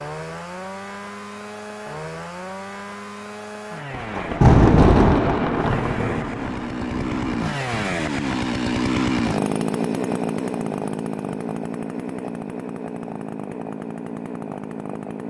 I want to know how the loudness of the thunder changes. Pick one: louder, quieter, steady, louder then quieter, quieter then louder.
quieter.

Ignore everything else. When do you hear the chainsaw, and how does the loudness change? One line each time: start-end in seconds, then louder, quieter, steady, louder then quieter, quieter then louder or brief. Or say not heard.
0.0-15.2 louder then quieter.